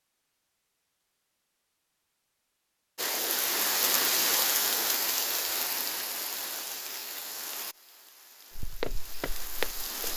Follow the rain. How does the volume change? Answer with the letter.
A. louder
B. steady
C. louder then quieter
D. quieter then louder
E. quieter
E.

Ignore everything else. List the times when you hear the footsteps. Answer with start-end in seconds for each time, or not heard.
8.6-10.1.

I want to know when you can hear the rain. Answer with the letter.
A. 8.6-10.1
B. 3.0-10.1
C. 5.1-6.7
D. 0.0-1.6
B.